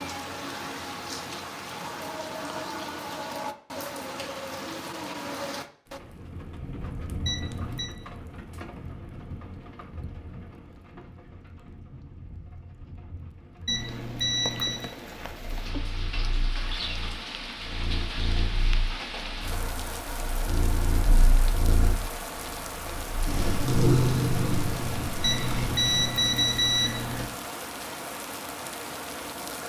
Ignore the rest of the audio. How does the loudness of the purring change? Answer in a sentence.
The loudness of the purring goes up.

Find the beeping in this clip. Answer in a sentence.
The beeping can be heard from 7.2 to 7.9 s, from 13.7 to 14.9 s and from 25.2 to 27.2 s.